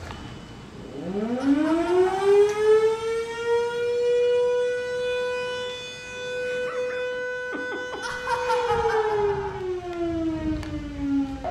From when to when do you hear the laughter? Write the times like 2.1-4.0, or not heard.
1.4-3.0, 8.0-9.6.